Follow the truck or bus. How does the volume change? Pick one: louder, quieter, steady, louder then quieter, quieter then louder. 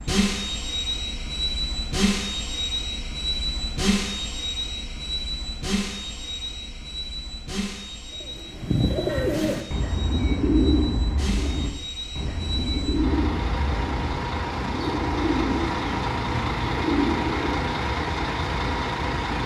quieter then louder.